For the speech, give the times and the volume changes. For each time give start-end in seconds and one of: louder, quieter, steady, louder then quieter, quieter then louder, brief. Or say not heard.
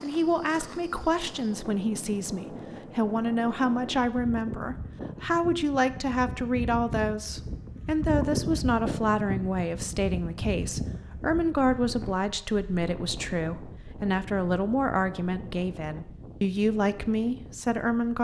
0.0-18.1 steady.